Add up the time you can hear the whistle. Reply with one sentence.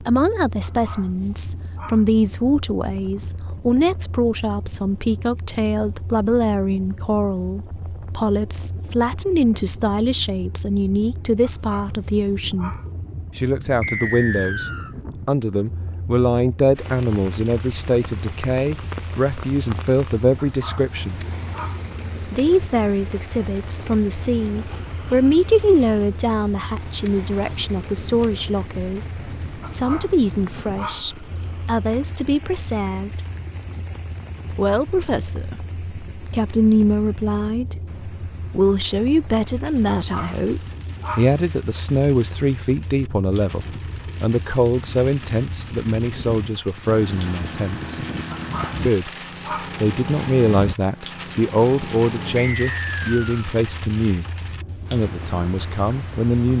You can hear the whistle for 2 seconds altogether.